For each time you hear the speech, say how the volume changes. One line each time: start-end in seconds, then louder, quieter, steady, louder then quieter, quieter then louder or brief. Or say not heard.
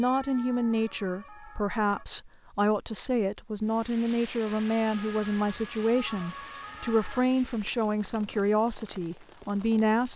0.0-10.1 steady.